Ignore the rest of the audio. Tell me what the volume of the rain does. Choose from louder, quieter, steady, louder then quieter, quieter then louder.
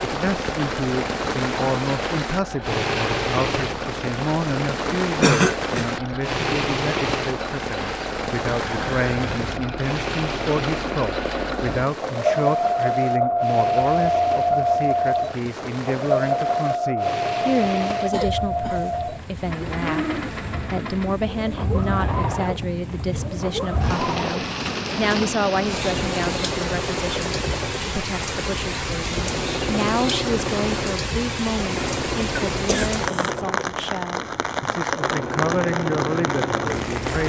quieter then louder.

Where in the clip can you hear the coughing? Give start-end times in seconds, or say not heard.
5.2-5.8, 18.1-18.9, 32.4-33.3.